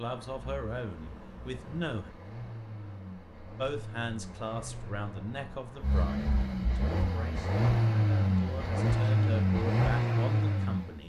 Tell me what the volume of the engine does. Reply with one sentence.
The volume of the engine goes up.